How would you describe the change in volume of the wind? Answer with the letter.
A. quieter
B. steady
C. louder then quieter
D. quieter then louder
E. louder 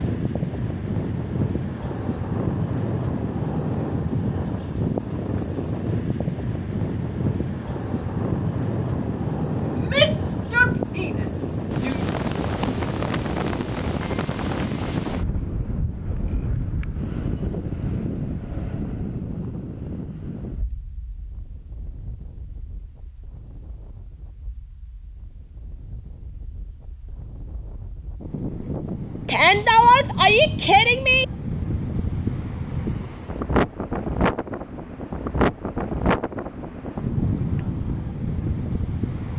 D.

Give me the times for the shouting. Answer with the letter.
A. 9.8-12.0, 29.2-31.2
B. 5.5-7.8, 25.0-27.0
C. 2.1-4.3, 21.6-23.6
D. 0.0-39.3
A.